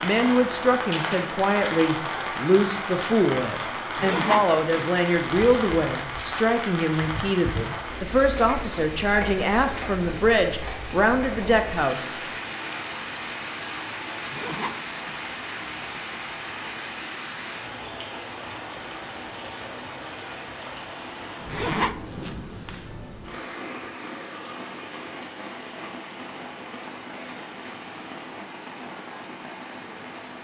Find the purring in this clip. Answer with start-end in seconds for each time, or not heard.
not heard.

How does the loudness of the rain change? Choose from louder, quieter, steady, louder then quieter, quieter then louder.
quieter.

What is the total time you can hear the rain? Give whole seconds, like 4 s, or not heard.
30 s.